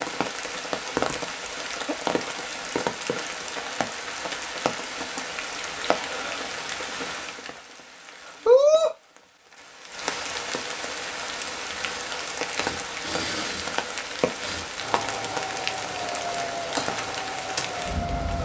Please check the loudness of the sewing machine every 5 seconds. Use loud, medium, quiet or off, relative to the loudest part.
off, off, loud, loud.